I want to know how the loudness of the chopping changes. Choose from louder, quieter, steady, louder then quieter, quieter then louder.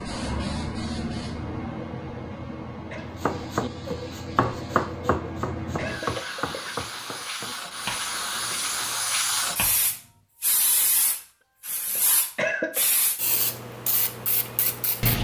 quieter.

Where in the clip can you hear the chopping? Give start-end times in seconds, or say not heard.
3.2-9.9.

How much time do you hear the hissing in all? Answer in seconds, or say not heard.
15 s.